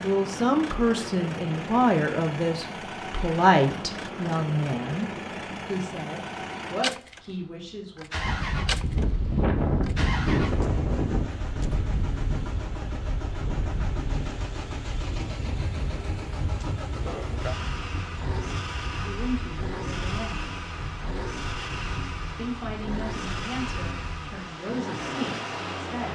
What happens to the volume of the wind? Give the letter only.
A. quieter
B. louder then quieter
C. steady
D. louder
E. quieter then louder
A.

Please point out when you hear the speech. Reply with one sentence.
The speech can be heard from 0.0 to 8.1 s, from 19.1 to 20.6 s and from 22.4 to 26.0 s.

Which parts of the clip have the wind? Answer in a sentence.
You can hear the wind from 8.2 to 26.0 s.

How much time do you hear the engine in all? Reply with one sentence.
The engine can be heard for 26 seconds in total.